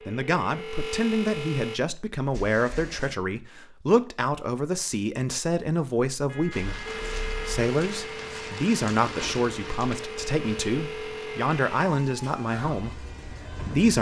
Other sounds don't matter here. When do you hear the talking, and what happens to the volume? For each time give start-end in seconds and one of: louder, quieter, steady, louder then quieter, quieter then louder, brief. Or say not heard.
0.1-13.9 steady.